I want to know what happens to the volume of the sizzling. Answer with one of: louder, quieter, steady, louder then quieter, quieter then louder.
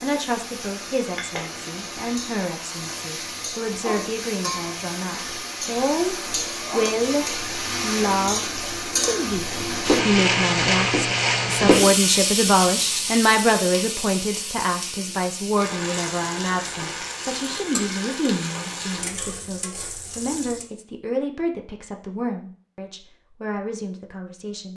louder then quieter.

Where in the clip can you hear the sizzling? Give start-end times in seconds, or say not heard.
0.0-20.7.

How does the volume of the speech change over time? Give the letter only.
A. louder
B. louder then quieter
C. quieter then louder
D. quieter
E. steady
B.